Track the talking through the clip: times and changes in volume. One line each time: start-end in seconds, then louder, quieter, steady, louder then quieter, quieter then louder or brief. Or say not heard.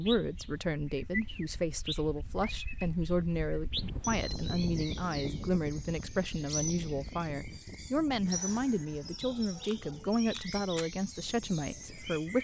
0.0-12.3 steady.